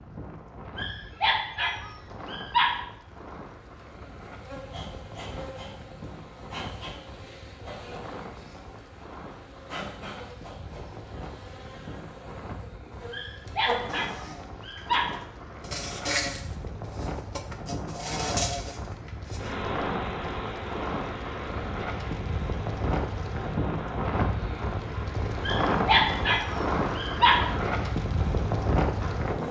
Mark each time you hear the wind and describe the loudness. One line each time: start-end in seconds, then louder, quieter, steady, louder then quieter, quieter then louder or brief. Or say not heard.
0.0-29.4 louder.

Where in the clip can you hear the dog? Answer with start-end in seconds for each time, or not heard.
0.8-2.8, 13.1-15.1, 25.4-27.4.